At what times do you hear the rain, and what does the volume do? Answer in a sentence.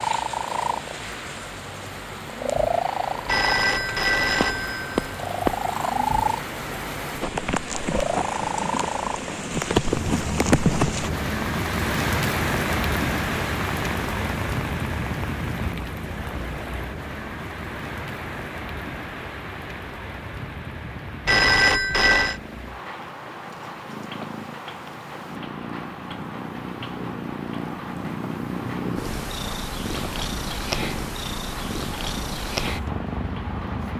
The rain can be heard from 0.0 to 33.9 s, getting louder then quieter.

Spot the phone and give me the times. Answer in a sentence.
You can hear the phone from 3.2 to 5.5 s and from 21.2 to 22.4 s.